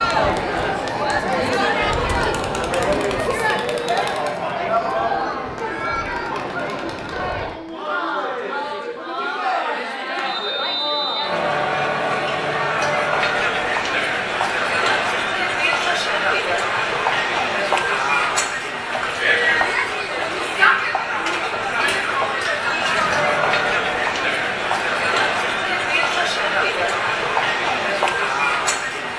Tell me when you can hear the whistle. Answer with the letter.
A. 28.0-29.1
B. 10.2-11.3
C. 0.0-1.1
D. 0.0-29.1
B.